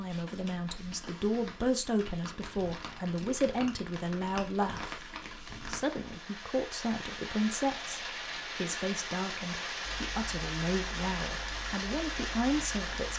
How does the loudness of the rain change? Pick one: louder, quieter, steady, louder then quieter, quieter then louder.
louder.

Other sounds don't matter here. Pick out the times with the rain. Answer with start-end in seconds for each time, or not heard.
0.0-13.1.